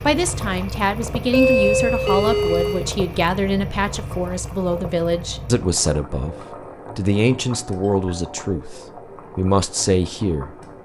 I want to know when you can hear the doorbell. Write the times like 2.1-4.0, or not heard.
1.3-2.9, 7.7-8.5.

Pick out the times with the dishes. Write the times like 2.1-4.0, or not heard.
not heard.